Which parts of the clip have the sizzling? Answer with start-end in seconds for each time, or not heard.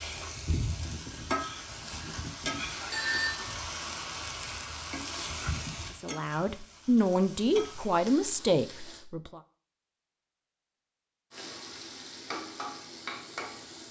0.0-9.1, 11.3-13.8.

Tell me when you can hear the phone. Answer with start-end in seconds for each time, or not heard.
2.9-3.5.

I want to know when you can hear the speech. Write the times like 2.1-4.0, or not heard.
6.0-9.4.